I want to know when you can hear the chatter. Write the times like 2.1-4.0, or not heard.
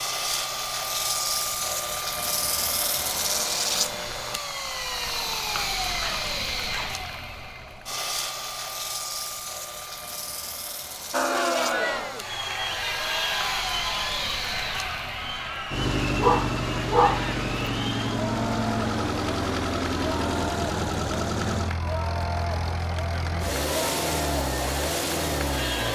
11.1-25.8.